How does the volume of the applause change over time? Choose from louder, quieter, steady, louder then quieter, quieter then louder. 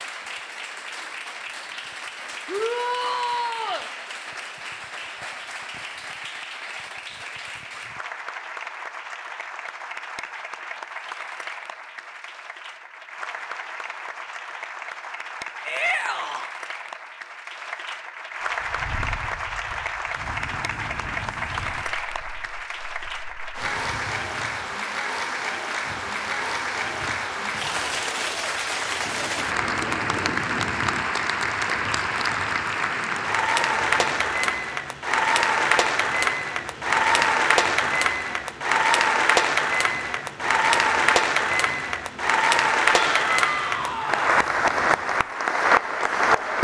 louder.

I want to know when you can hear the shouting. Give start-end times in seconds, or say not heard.
2.5-3.9, 15.7-16.5, 42.9-44.3.